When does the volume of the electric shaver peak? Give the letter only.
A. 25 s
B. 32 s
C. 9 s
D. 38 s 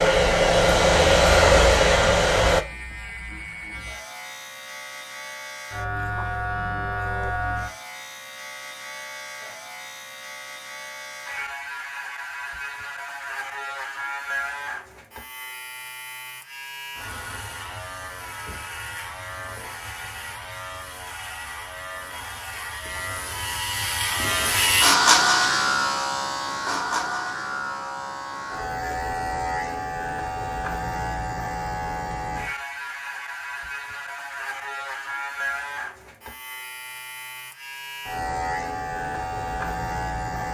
A.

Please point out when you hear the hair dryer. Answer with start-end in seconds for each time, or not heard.
0.0-2.6.